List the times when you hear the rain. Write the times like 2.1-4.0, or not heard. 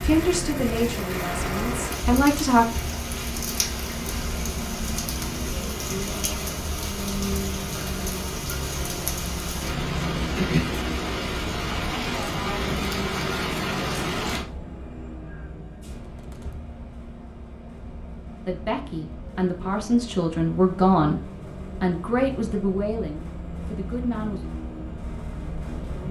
0.0-14.4.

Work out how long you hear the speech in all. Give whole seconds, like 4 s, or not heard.
8 s.